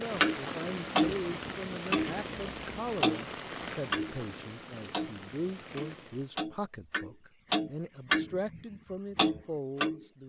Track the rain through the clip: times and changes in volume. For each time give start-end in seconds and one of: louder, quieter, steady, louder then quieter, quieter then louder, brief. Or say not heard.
0.0-6.4 quieter.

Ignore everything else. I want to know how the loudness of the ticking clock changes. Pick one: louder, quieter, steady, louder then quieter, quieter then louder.
quieter then louder.